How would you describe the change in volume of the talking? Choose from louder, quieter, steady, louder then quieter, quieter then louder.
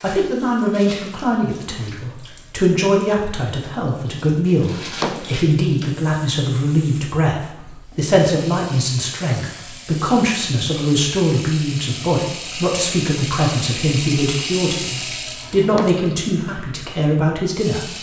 steady.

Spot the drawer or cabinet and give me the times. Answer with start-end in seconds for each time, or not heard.
4.6-5.4, 15.3-16.1.